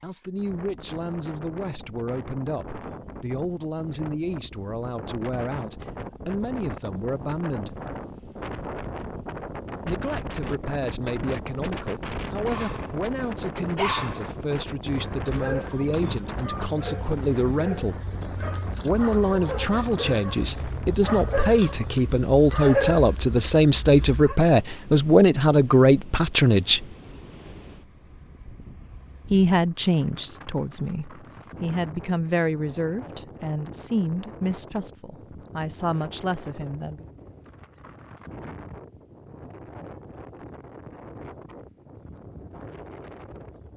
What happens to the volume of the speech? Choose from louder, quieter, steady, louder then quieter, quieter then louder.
louder then quieter.